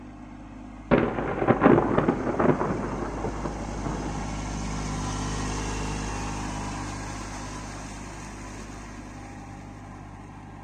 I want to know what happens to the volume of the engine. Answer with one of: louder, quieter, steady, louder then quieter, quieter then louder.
louder then quieter.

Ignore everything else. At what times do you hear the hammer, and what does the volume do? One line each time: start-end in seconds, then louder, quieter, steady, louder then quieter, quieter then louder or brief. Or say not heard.
not heard.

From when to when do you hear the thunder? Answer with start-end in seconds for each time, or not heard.
0.9-4.2.